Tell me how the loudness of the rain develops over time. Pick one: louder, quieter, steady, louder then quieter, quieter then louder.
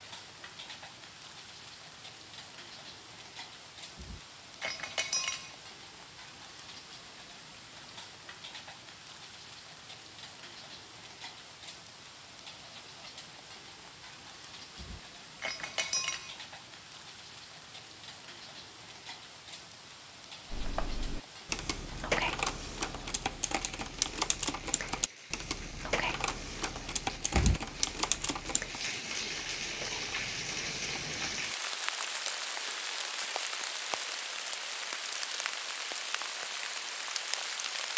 louder.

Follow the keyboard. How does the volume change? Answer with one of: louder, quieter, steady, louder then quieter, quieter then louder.
quieter.